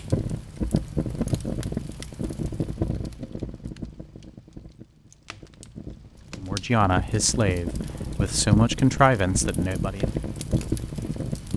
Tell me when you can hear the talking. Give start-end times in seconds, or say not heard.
6.3-10.1.